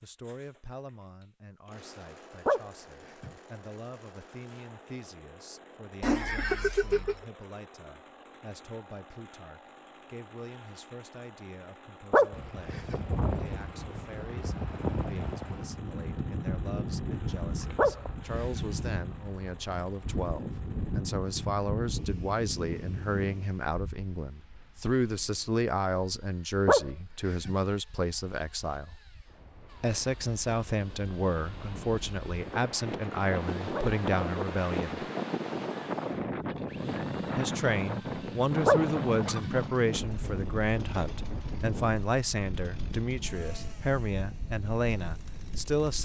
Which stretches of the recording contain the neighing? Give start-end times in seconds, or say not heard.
6.0-7.2.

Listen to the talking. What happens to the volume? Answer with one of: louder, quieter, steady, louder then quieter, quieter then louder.
louder.